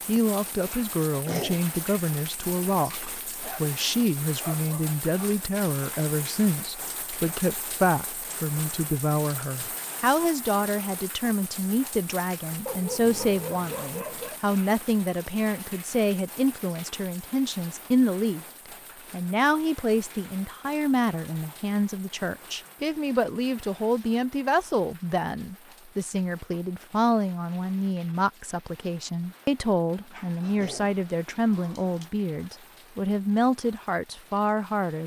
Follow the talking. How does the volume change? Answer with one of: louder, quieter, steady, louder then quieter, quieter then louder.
steady.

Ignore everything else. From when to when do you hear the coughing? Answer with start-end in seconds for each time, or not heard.
1.1-1.6, 30.4-30.9.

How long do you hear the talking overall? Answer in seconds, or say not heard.
34 s.